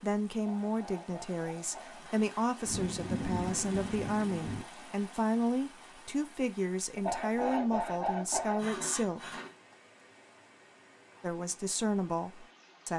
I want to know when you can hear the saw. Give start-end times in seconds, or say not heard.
0.3-2.2, 7.0-9.5.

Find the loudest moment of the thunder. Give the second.
3 s.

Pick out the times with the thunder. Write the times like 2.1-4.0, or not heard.
2.6-4.7.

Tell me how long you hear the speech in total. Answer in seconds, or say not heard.
11 s.